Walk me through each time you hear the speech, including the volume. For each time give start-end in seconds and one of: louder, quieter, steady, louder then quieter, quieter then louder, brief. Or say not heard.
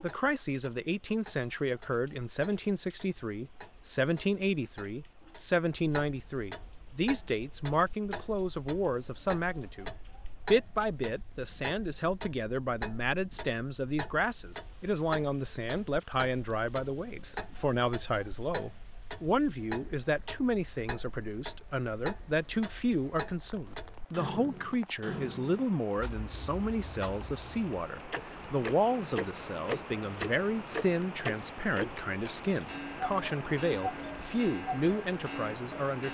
0.0-36.1 steady.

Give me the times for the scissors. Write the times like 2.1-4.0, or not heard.
not heard.